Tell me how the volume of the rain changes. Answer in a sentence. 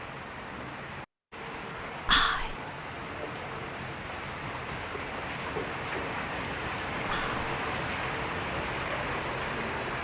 The loudness of the rain goes up.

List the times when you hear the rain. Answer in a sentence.
You can hear the rain from 0.0 to 9.9 s.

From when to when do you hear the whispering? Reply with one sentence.
The whispering can be heard from 2.0 to 2.5 s and from 7.0 to 7.5 s.